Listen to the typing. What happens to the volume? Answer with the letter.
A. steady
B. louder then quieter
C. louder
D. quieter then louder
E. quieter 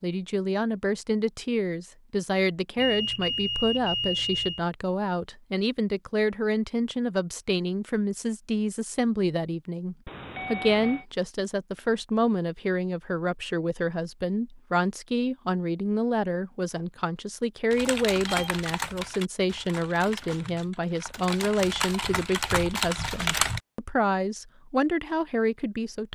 D.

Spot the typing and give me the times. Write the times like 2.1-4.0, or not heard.
17.7-23.6.